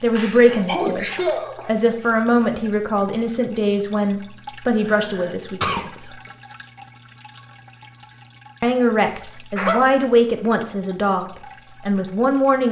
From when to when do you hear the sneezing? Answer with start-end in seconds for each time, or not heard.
0.1-1.7, 4.8-5.8, 9.6-10.1.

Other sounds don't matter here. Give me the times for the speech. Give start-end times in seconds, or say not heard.
0.0-6.2, 8.6-12.6.